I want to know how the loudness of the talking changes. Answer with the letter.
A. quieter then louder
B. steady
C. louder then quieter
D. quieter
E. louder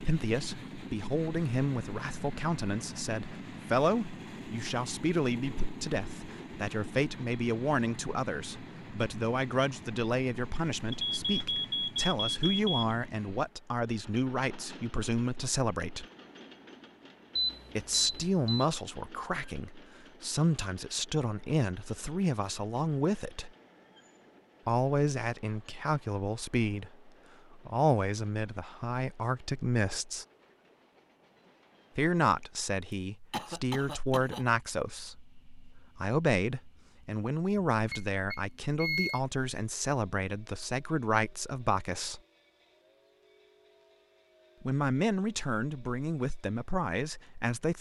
B.